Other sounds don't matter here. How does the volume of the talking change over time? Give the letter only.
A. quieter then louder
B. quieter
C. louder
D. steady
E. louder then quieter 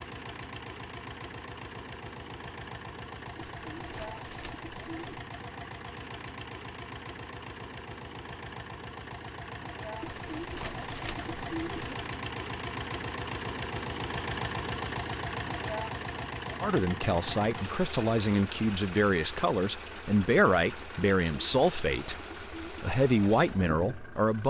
D.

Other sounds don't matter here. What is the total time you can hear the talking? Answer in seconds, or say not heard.
8 s.